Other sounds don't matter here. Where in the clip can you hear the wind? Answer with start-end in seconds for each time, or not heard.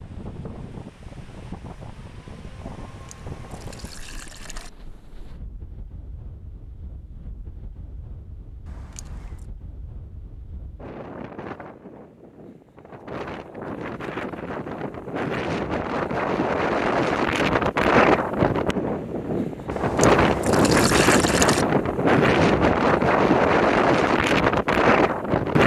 0.0-25.6.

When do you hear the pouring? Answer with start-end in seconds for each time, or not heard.
3.0-4.7, 8.7-9.4, 19.7-21.6.